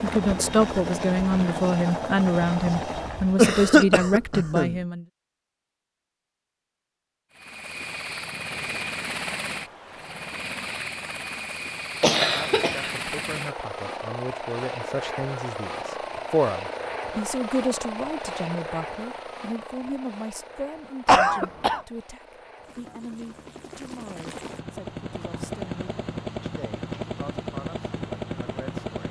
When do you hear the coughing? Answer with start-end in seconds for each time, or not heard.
3.4-4.8, 12.0-12.9, 21.1-21.9.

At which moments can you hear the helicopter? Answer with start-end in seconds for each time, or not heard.
0.0-3.5, 7.3-29.0.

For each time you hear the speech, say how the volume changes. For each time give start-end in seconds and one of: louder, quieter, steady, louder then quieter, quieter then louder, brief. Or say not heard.
0.0-5.0 steady
12.2-29.0 louder then quieter.